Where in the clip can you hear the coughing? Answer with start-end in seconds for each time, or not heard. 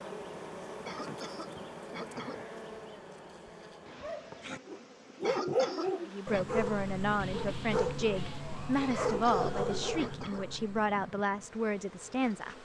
0.8-2.5, 5.2-6.5, 8.9-10.5.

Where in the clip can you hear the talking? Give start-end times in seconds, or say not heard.
6.0-12.5.